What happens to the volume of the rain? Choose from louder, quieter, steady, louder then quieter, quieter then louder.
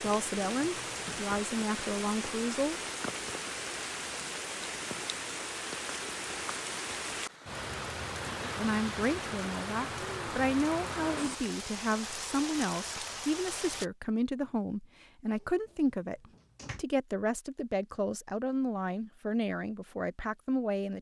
steady.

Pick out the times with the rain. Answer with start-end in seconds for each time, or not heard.
0.0-13.9.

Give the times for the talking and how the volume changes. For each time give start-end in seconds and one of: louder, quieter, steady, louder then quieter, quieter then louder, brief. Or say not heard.
0.0-2.8 brief
8.4-20.9 steady.